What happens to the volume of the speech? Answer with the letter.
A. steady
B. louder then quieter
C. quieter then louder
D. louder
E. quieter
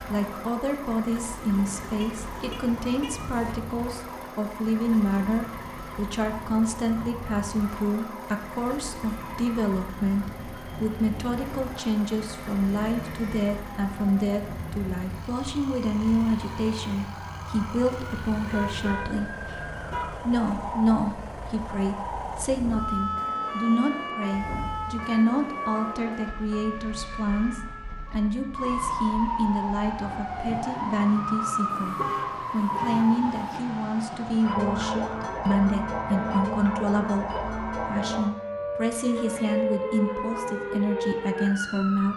A.